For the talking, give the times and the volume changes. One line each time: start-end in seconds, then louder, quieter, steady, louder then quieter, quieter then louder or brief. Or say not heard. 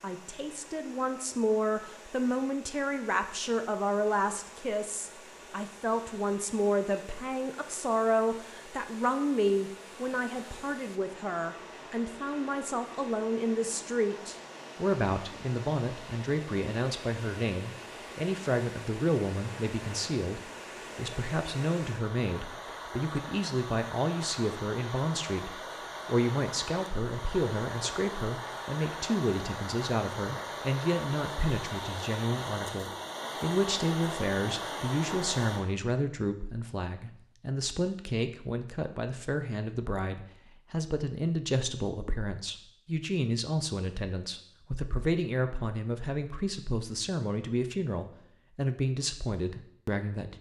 0.0-50.3 steady.